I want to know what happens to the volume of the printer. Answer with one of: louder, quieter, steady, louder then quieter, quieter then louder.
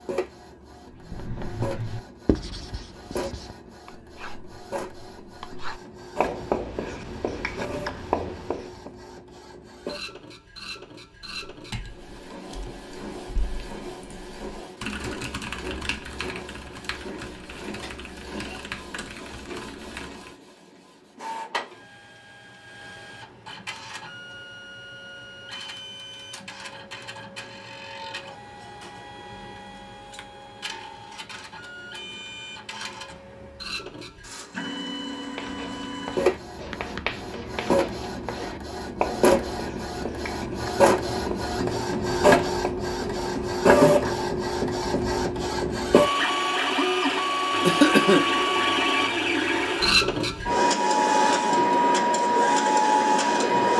louder.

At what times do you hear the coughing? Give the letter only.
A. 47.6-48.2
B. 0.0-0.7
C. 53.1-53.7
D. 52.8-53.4
A.